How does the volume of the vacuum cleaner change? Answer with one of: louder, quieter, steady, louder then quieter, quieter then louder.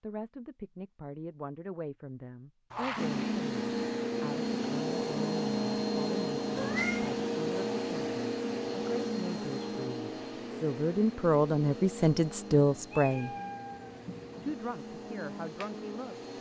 quieter.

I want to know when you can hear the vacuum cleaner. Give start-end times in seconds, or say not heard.
3.0-16.3.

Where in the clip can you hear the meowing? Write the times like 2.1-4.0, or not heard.
2.7-3.4, 6.5-7.2, 12.7-14.6.